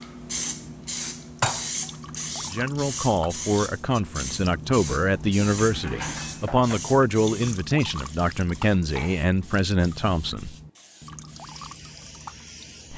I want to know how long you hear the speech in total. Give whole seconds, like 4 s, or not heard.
8 s.